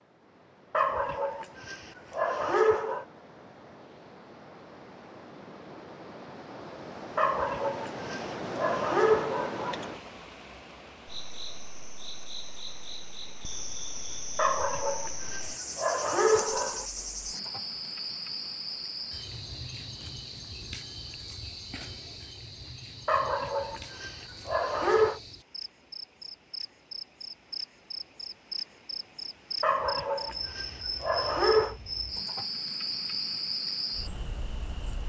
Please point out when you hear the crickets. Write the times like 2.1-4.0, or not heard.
11.1-35.0.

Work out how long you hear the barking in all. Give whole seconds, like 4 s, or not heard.
12 s.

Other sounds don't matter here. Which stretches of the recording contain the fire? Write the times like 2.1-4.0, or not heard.
not heard.